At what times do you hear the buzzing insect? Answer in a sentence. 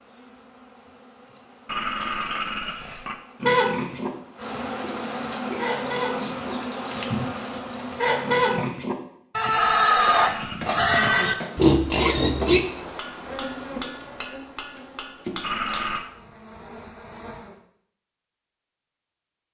You can hear the buzzing insect from 0.0 to 8.7 s and from 11.4 to 17.6 s.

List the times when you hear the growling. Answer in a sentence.
You can hear the growling from 1.6 to 3.1 s, from 9.5 to 11.4 s and from 15.4 to 16.1 s.